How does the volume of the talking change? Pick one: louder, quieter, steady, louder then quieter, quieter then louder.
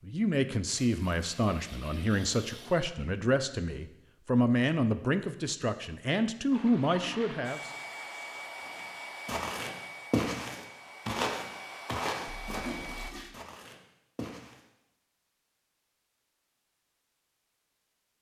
steady.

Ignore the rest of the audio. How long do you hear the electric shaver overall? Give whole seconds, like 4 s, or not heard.
not heard.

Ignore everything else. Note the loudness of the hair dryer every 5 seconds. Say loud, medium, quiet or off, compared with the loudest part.
off, loud, loud, off.